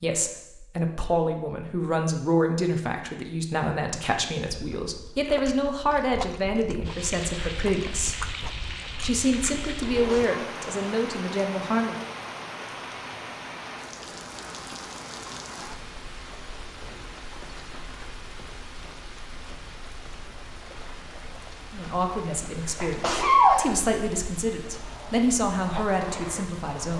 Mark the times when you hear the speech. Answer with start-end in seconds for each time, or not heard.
0.0-8.2, 9.0-12.0, 21.7-26.9.